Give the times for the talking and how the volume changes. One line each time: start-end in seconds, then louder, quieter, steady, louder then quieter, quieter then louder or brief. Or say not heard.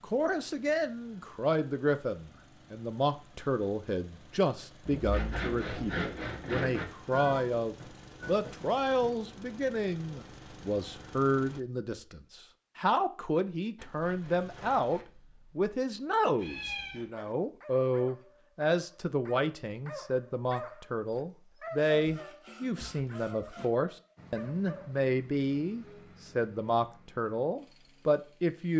0.0-28.7 steady.